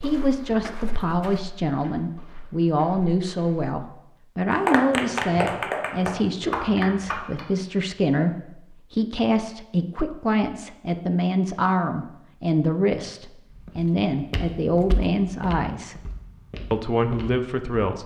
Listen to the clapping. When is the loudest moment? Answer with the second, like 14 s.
5 s.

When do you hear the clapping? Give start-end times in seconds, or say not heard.
4.5-7.5.